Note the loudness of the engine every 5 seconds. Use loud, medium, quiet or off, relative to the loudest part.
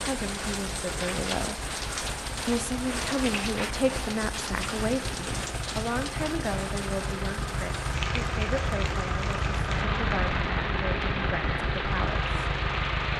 medium, loud, loud.